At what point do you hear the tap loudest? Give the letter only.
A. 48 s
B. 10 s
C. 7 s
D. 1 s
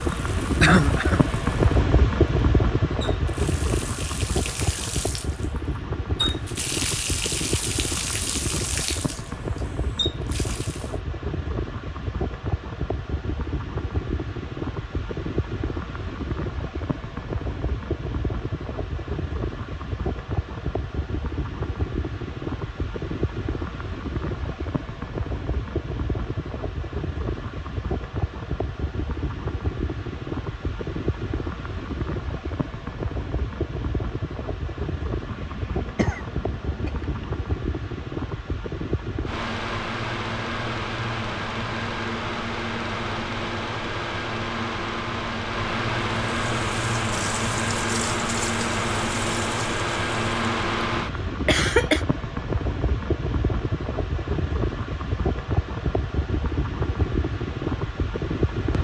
C.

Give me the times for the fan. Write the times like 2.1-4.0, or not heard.
0.0-58.7.